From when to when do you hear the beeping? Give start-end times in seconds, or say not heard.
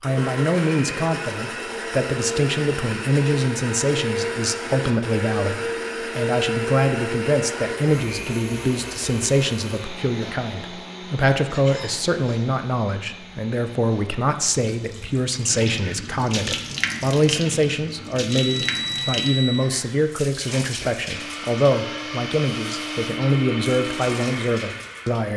18.4-19.7.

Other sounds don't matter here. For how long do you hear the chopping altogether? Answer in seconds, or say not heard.
not heard.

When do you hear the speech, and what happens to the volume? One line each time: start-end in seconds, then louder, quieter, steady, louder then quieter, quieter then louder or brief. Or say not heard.
0.0-25.3 steady.